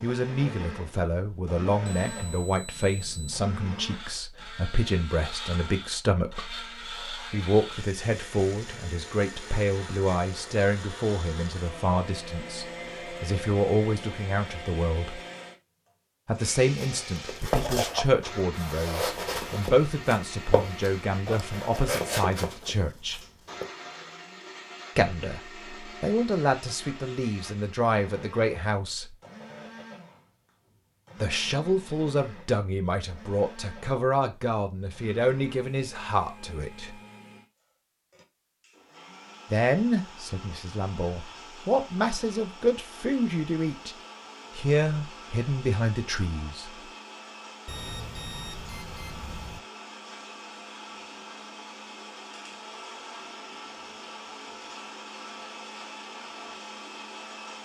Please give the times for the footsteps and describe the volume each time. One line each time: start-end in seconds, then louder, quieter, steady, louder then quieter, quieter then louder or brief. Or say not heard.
16.8-23.7 quieter.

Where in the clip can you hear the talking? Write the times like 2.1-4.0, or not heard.
0.0-15.2, 16.2-23.2, 24.9-29.1, 31.2-37.0, 39.5-44.0, 44.5-46.7.